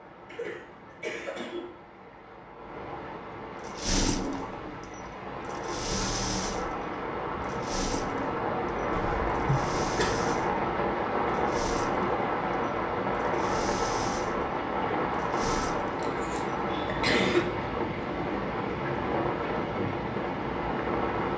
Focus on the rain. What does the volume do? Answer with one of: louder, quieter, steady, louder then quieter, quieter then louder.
louder.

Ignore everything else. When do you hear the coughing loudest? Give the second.
17 s.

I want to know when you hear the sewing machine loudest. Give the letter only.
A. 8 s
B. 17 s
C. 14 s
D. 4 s
D.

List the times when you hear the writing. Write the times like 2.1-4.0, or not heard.
not heard.